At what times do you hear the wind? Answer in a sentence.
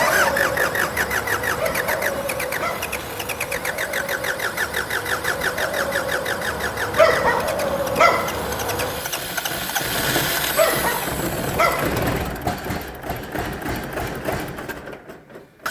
The wind can be heard from 0.0 to 9.2 s.